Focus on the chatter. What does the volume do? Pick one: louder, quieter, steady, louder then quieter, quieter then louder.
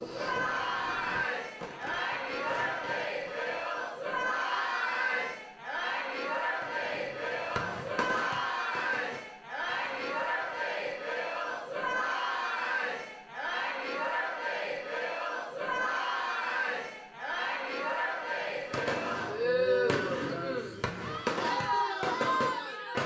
steady.